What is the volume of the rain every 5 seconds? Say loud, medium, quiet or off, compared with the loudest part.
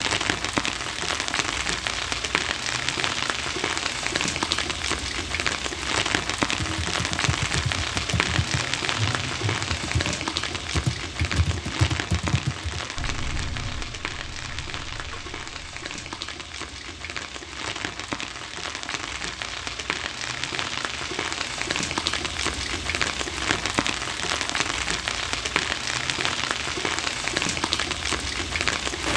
loud, loud, medium, medium, loud, loud.